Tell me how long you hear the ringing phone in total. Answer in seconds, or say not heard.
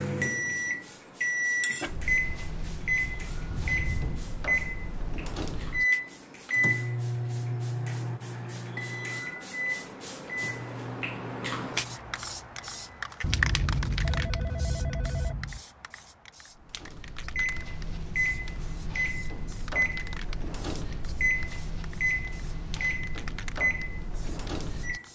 3 s.